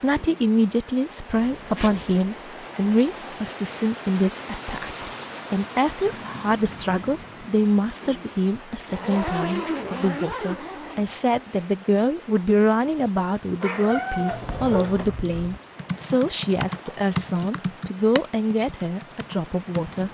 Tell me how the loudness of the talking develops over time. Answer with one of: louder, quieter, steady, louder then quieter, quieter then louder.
steady.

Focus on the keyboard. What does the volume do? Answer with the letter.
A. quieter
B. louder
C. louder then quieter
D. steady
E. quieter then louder
C.